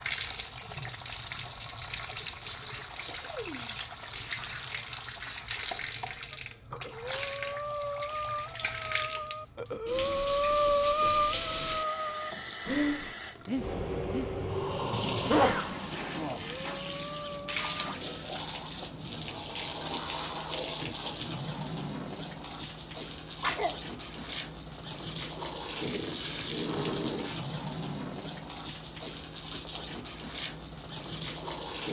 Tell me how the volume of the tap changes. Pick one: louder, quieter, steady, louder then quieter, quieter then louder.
steady.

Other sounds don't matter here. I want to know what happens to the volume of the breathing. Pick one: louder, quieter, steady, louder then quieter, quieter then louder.
louder then quieter.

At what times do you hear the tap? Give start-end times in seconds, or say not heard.
0.0-31.8.